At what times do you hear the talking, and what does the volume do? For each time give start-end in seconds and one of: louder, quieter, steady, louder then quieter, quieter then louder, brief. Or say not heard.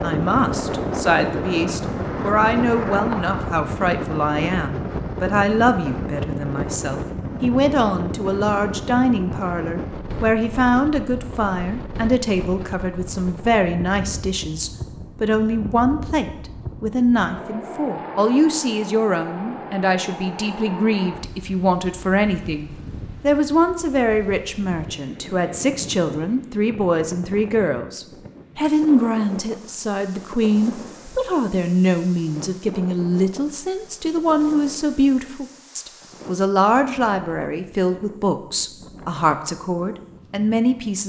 0.0-41.0 steady.